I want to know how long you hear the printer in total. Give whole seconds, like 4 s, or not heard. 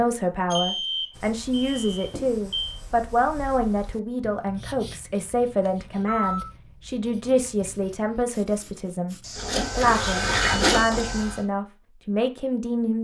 2 s.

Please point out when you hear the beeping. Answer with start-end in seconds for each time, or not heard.
0.5-2.8, 5.7-6.5, 9.2-11.2.